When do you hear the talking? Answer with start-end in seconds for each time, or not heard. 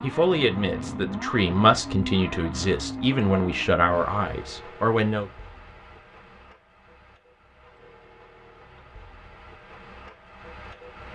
0.0-5.3.